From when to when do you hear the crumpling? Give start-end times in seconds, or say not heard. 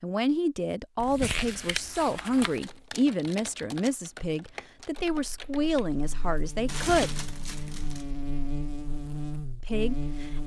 1.0-2.6, 6.7-8.1.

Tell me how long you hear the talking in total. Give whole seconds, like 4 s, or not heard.
8 s.